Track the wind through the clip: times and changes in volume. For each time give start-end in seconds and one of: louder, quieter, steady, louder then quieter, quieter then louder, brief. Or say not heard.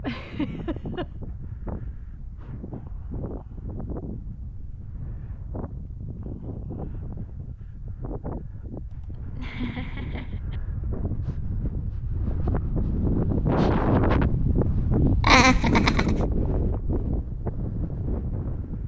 0.0-18.8 louder.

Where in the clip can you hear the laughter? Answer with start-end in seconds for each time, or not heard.
0.0-1.1, 8.9-10.6, 15.2-16.1.